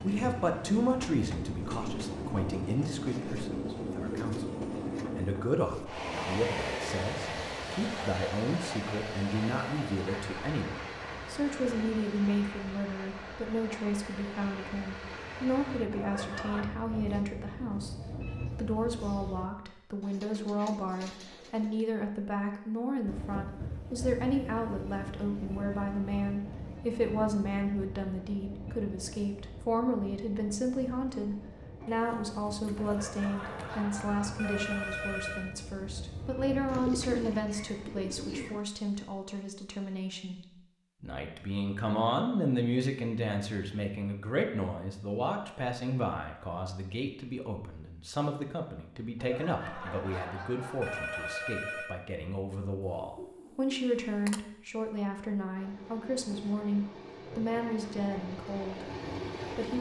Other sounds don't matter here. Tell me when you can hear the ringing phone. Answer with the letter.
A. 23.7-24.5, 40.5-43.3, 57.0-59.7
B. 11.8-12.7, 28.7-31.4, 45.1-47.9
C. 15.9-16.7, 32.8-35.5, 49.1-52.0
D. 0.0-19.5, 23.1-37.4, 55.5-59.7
C.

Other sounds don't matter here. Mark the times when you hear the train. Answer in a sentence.
You can hear the train from 0.0 to 19.5 s, from 23.1 to 37.4 s and from 55.5 to 59.7 s.